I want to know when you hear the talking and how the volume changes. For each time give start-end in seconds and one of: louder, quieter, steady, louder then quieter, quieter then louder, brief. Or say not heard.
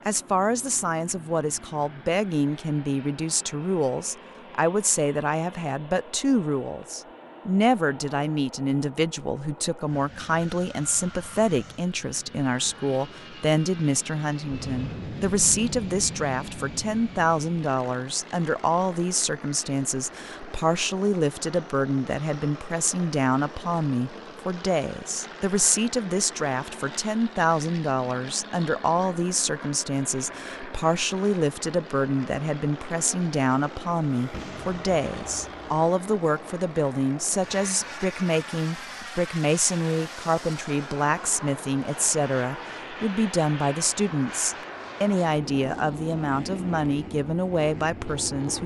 0.1-48.6 steady.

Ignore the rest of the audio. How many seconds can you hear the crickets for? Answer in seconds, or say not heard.
not heard.